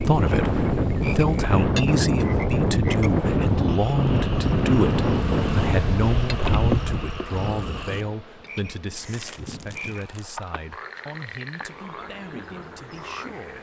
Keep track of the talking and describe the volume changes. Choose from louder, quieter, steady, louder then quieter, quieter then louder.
quieter.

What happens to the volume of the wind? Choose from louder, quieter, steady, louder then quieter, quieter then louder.
quieter.